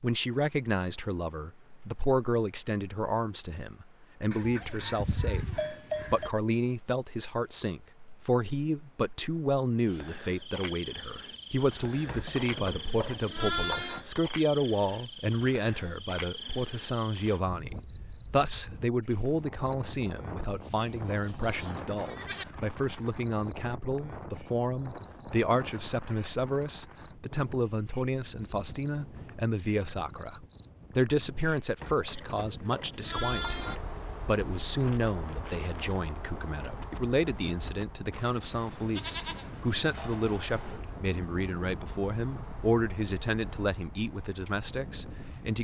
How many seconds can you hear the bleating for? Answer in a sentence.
The bleating can be heard for 11 seconds in total.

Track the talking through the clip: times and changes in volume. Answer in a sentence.
The talking can be heard from 0.0 to 45.6 s, at a steady volume.